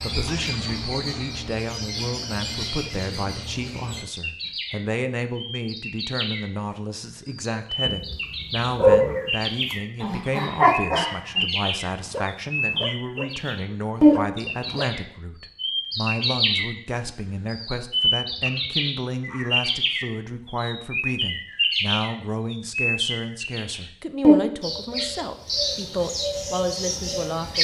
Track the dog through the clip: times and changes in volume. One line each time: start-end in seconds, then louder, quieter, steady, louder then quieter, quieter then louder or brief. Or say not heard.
7.8-14.9 quieter.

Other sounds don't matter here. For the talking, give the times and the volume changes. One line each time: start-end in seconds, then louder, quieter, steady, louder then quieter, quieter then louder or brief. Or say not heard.
0.0-27.6 steady.